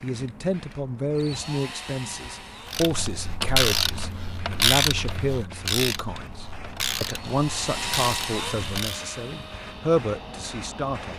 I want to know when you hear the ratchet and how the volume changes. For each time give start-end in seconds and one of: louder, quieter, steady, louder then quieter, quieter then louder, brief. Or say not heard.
2.7-9.0 quieter.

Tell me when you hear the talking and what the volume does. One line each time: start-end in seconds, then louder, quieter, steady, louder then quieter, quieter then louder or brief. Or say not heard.
0.0-11.1 steady.